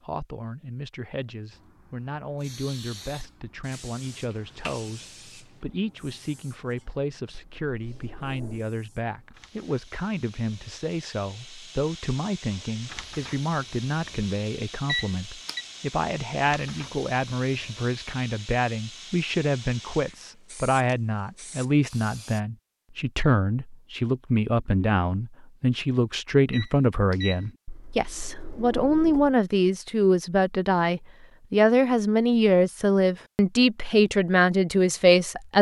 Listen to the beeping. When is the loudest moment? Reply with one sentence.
The loudest moment of the beeping is at 15 seconds.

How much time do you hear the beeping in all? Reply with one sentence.
The beeping can be heard for 2 seconds in total.